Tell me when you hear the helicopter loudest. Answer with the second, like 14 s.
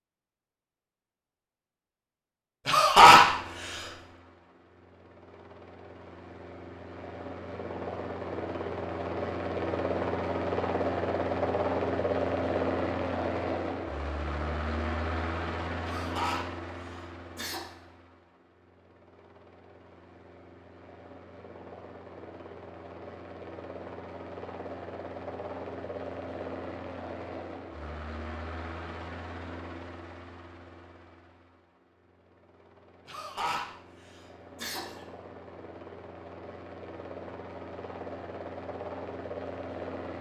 12 s.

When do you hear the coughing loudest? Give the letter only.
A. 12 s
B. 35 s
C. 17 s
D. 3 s
D.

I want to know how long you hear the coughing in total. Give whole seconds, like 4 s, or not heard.
5 s.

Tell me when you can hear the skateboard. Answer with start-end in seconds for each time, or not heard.
not heard.